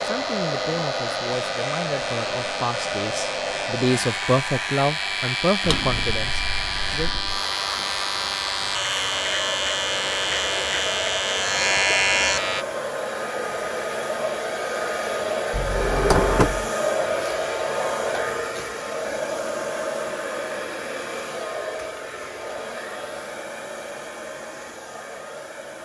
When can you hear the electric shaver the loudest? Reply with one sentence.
The volume of the electric shaver peaks at 12 seconds.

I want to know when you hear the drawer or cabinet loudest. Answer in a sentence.
The loudest moment of the drawer or cabinet is at 16 seconds.